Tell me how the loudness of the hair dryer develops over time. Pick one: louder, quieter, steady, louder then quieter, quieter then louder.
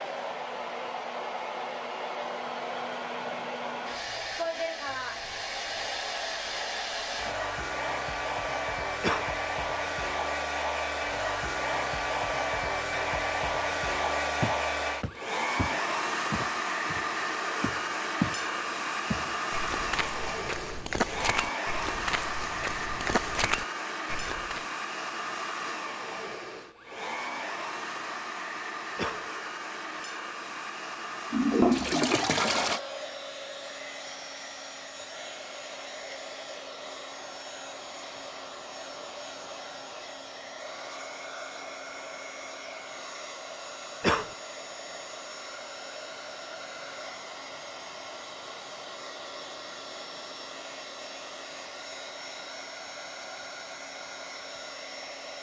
quieter.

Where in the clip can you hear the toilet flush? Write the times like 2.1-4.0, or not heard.
31.3-32.8.